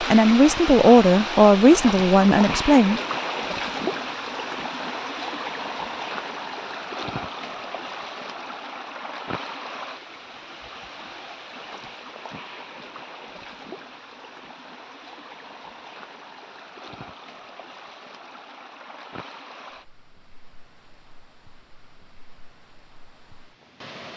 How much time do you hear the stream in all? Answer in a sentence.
You can hear the stream for 24 seconds altogether.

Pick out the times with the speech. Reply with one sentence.
You can hear the speech from 0.0 to 3.0 s.